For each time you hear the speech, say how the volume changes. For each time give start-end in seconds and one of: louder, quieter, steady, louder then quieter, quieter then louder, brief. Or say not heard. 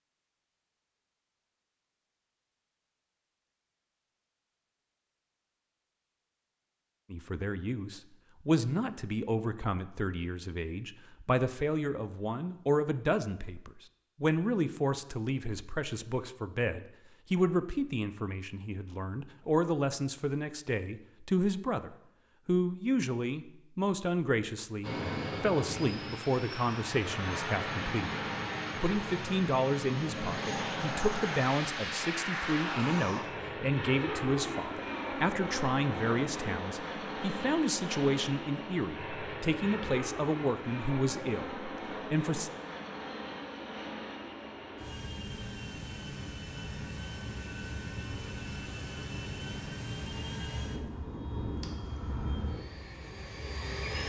7.1-42.5 steady.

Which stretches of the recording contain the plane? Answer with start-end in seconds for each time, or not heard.
24.8-54.0.